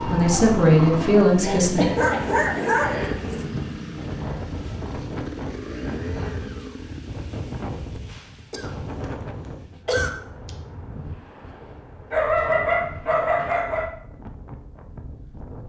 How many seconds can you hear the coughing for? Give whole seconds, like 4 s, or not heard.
3 s.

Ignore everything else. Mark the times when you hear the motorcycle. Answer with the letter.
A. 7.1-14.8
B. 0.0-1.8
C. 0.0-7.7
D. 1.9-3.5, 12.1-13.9
C.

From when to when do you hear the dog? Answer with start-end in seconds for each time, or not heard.
1.9-3.5, 12.1-13.9.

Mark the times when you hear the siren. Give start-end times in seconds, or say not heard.
not heard.